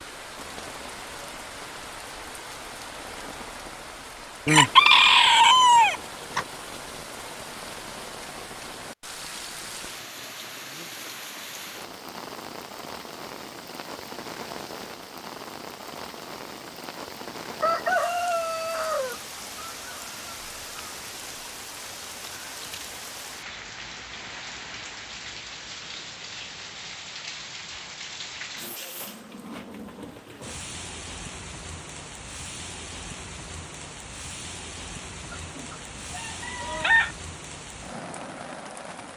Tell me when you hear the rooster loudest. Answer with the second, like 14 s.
5 s.